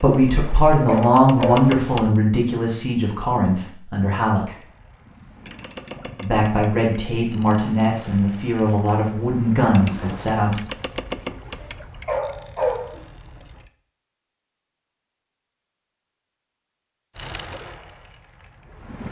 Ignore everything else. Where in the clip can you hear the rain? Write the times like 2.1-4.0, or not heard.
not heard.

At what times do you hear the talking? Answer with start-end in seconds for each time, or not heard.
0.0-4.5, 6.2-10.6.